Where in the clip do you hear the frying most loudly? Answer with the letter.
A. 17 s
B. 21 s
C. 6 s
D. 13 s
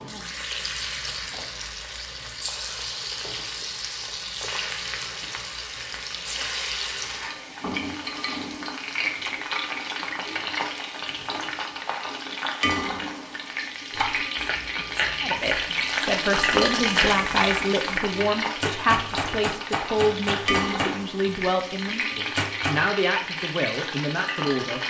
A.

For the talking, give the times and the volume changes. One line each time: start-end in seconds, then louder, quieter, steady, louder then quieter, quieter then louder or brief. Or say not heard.
15.2-24.8 steady.